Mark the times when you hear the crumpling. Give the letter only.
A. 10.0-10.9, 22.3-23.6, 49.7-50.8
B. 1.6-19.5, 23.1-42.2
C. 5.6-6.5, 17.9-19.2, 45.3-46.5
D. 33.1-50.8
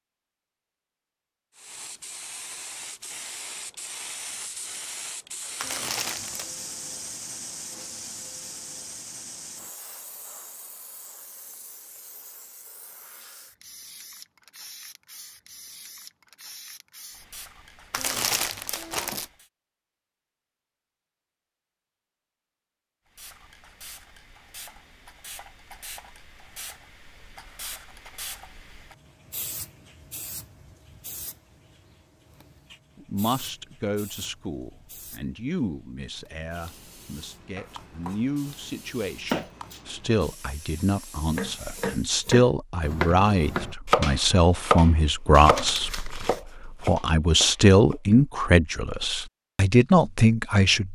C.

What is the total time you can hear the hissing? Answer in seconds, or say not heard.
37 s.